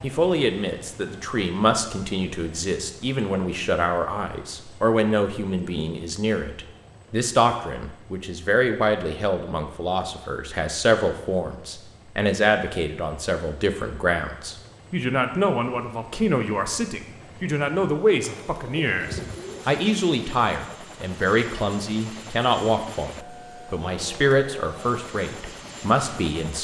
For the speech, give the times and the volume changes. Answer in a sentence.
You can hear the speech from 0.0 to 26.5 s, at a steady volume.